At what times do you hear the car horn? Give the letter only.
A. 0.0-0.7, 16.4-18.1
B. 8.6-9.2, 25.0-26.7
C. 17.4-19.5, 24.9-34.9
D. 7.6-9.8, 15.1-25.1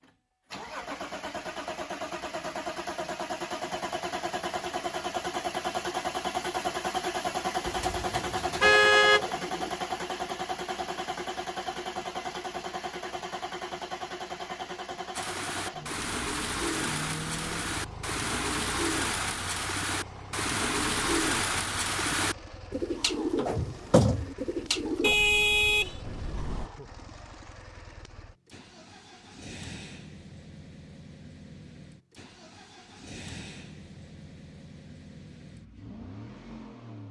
B.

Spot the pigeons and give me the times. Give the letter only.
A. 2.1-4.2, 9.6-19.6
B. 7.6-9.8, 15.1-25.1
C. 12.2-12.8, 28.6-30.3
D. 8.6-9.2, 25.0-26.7
B.